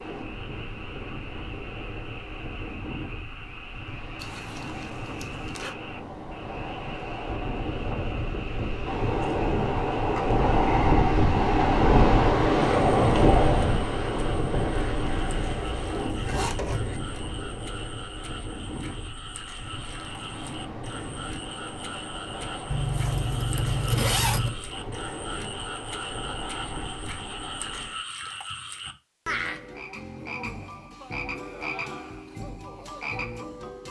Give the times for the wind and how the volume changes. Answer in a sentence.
The wind can be heard from 0.0 to 28.1 s, getting louder then quieter.